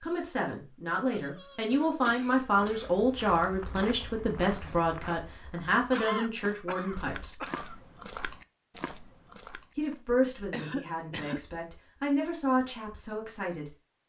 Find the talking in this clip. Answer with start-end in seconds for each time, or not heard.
0.0-7.5, 9.8-13.8.